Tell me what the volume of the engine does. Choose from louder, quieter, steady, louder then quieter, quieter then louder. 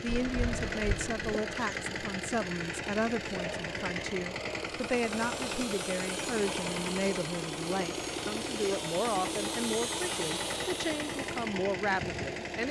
steady.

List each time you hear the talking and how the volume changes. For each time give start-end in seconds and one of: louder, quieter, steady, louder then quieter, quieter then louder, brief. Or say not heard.
0.0-12.6 steady.